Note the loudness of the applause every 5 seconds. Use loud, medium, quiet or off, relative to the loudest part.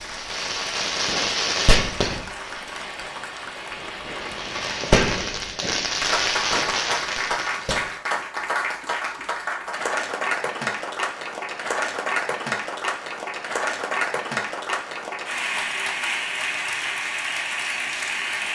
medium, loud, loud, loud.